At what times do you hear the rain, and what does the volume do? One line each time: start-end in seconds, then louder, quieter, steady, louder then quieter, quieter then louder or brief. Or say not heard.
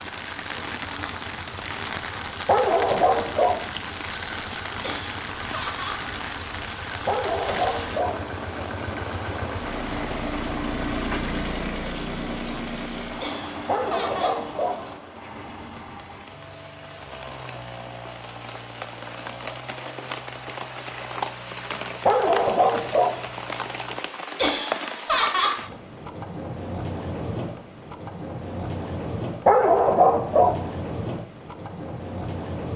0.0-32.7 quieter then louder.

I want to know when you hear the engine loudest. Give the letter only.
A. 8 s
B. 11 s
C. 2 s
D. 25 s
B.